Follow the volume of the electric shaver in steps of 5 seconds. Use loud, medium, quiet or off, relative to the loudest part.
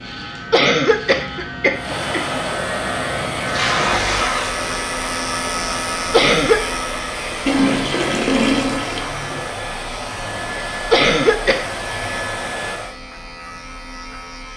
loud, loud, medium.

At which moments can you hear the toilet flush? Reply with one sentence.
You can hear the toilet flush from 3.4 to 4.6 s and from 7.5 to 9.4 s.